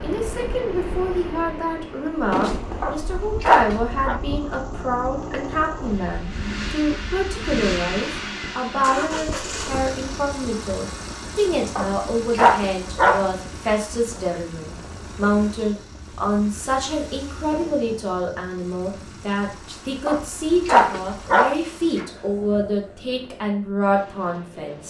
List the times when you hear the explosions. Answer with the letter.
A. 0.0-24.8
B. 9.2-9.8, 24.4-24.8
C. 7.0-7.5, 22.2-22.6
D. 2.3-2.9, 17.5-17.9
D.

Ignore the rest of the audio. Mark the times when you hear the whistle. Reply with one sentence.
You can't hear the whistle here.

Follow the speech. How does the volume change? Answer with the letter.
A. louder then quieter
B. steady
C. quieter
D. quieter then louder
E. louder
B.